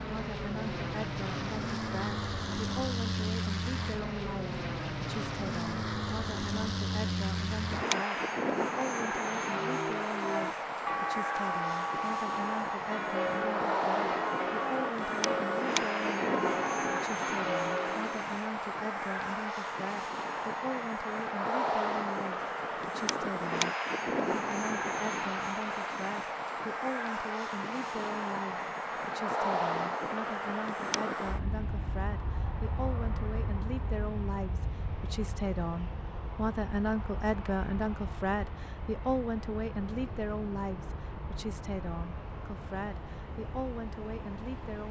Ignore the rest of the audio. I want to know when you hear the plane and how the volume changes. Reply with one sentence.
The plane can be heard from 0.0 to 44.8 s, getting quieter.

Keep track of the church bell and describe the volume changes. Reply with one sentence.
The volume of the church bell stays about the same.